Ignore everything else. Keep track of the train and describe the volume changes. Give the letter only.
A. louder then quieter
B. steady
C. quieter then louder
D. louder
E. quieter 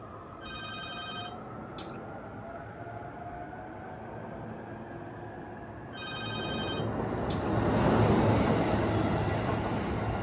D.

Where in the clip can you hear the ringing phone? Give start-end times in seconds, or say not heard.
0.4-1.9, 5.9-7.5.